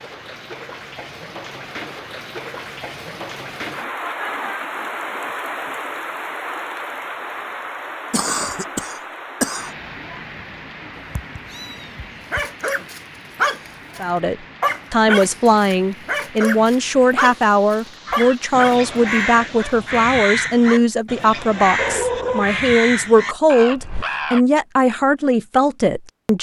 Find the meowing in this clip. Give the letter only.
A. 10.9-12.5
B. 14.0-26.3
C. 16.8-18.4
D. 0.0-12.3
A.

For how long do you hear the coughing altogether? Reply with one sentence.
The coughing can be heard for 2 seconds in total.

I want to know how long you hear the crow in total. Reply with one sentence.
You can hear the crow for 6 seconds altogether.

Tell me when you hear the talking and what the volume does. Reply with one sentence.
The talking can be heard from 14.0 to 26.3 s, at a steady volume.